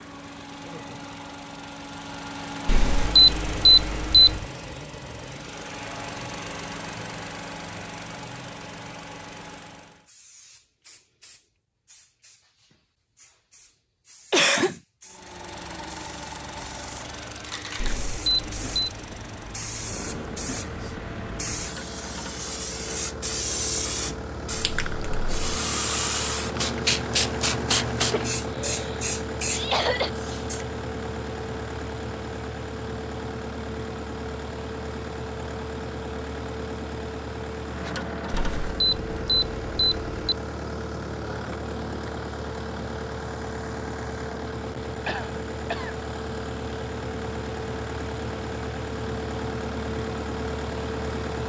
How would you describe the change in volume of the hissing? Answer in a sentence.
The loudness of the hissing goes up.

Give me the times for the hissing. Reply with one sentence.
The hissing can be heard from 10.1 to 30.6 s.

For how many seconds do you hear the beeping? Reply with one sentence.
You can hear the beeping for 5 seconds altogether.